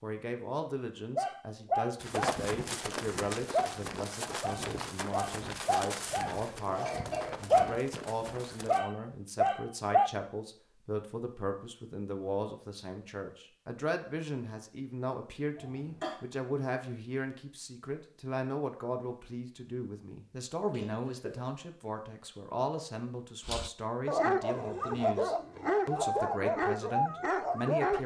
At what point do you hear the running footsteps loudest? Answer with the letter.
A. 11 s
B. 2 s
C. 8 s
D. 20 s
B.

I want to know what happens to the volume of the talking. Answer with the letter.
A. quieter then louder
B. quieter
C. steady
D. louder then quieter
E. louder
C.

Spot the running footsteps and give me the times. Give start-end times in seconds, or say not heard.
1.9-8.8.